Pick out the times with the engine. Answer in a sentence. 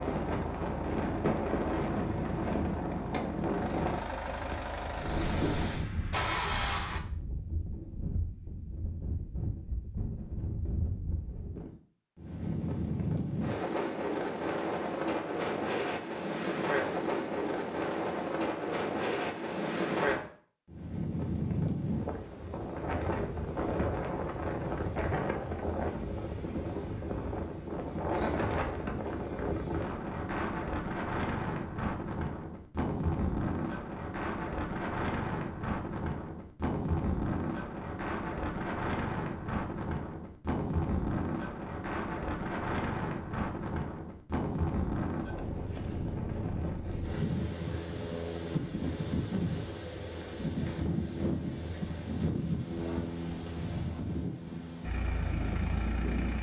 The engine can be heard from 0.0 to 7.0 s and from 54.8 to 56.3 s.